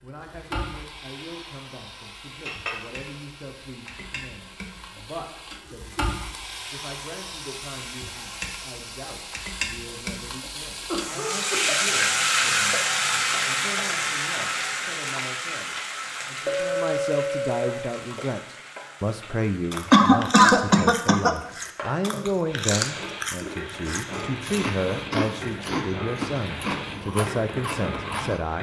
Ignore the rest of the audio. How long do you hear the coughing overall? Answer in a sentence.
You can hear the coughing for 2 seconds altogether.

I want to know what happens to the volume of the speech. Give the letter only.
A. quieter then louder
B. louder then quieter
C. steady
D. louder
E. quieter
D.